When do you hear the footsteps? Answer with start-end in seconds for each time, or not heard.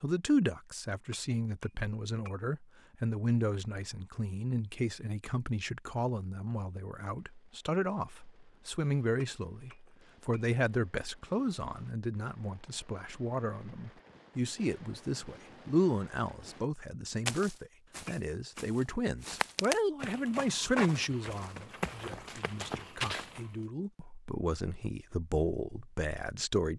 17.2-23.5.